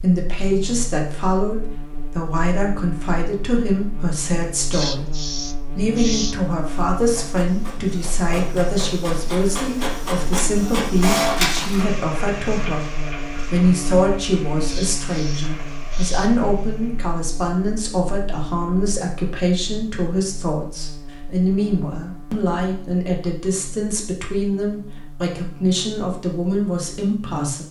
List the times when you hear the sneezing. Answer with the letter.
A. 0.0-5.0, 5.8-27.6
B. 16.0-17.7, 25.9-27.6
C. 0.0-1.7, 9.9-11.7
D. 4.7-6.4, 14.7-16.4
D.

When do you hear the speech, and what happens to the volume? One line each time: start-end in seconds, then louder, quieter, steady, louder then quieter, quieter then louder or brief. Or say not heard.
0.0-5.0 steady
5.8-27.6 steady.